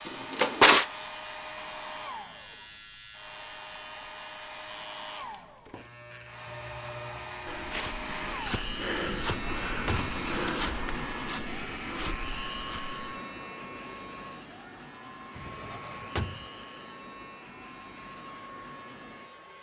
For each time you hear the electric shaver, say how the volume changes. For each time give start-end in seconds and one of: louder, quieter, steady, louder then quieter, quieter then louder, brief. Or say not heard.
0.0-19.5 louder then quieter.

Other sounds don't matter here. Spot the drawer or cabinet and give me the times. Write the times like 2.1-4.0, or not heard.
0.1-0.8, 9.2-10.2, 15.3-16.4.